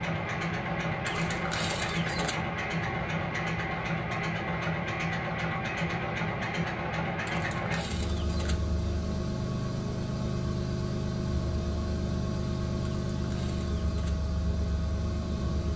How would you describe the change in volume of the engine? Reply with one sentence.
The volume of the engine stays about the same.